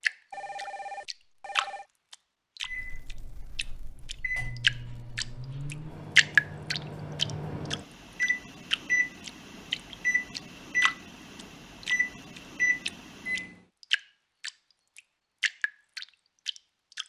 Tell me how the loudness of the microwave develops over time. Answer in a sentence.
The loudness of the microwave goes up.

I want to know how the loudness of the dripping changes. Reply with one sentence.
The loudness of the dripping goes up, then down.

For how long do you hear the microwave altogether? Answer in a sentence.
The microwave can be heard for 11 seconds in total.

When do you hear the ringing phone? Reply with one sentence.
The ringing phone can be heard from 0.3 to 1.9 s.